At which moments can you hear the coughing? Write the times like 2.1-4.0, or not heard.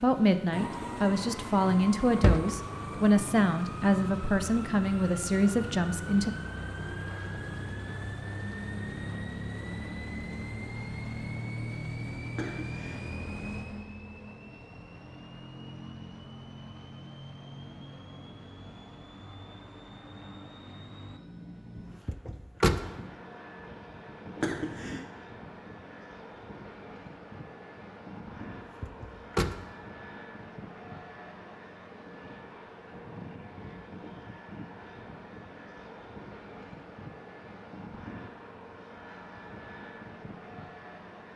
12.3-13.1, 24.4-25.1.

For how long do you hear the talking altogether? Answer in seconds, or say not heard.
6 s.